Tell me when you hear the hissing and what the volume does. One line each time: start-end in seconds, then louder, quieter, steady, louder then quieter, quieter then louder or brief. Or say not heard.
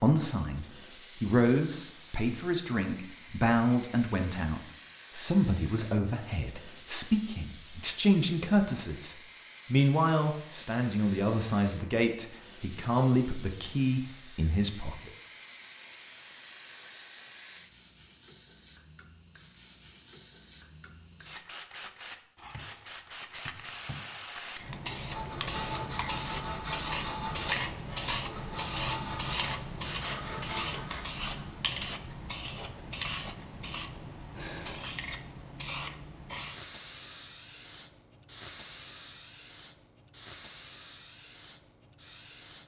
0.0-42.6 louder then quieter.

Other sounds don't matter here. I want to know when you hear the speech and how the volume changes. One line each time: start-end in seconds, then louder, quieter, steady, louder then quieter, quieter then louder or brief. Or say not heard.
0.0-15.1 steady.